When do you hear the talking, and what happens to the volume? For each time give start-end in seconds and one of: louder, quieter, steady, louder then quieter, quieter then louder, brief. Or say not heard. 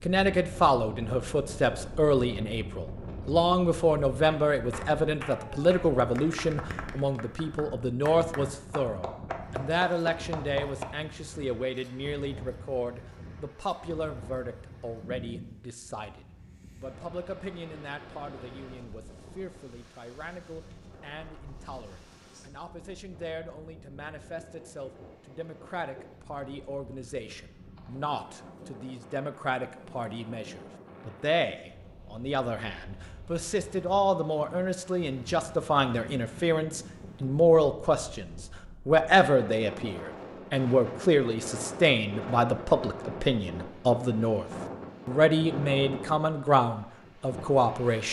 0.0-44.5 quieter then louder
45.0-48.0 brief.